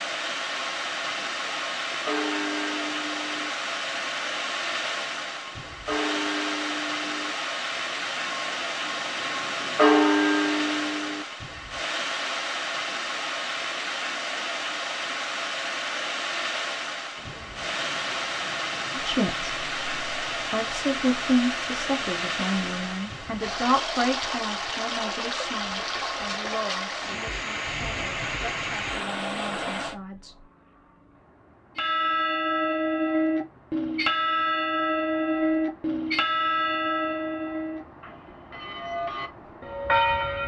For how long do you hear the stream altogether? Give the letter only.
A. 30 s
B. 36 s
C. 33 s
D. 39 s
A.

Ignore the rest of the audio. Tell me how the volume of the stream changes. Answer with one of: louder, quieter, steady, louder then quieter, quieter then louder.
steady.